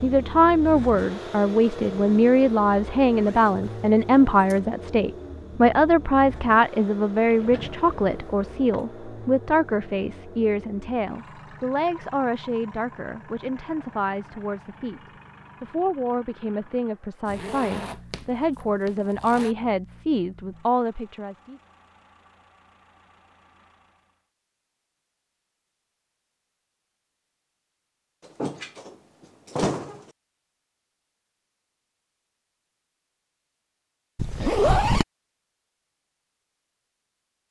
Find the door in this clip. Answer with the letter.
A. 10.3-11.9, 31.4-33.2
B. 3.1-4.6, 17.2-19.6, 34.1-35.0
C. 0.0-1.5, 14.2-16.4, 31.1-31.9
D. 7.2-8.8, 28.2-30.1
D.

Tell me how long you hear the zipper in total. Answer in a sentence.
The zipper can be heard for 5 seconds in total.